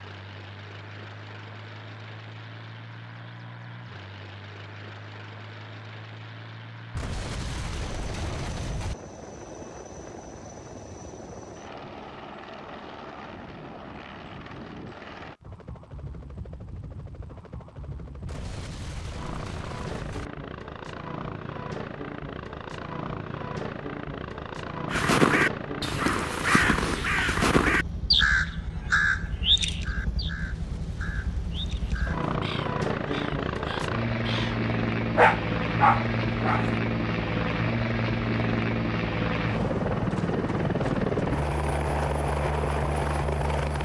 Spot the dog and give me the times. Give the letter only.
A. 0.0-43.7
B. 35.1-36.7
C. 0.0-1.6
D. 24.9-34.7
B.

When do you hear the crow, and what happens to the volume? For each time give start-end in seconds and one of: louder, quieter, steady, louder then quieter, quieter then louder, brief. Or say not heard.
24.9-34.7 quieter.